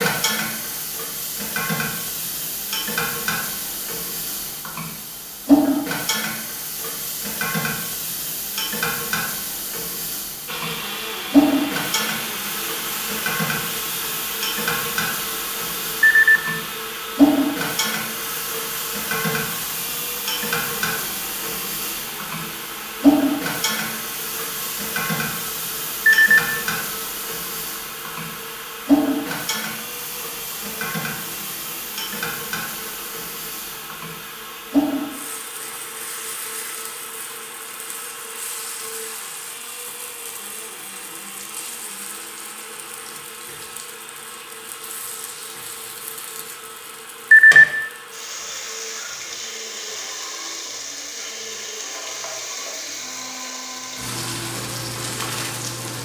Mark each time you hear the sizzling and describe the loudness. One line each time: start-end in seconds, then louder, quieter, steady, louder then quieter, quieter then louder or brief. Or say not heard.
0.0-56.0 quieter.